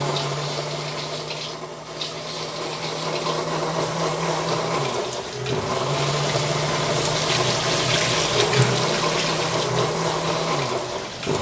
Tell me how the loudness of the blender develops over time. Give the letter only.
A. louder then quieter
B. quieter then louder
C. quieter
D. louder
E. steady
D.